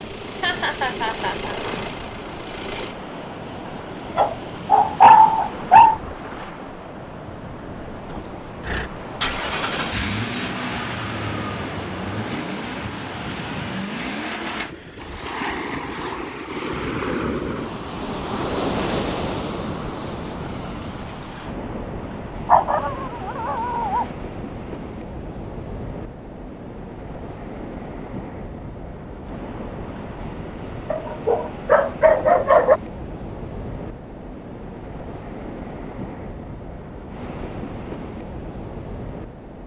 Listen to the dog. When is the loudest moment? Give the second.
5 s.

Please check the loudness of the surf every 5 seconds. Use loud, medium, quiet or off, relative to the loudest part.
medium, medium, medium, loud, medium, medium, medium, medium.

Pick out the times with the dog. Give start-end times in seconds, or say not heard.
4.2-6.0, 22.4-24.1, 30.9-32.8.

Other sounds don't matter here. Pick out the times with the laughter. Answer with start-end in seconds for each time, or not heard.
0.4-1.6.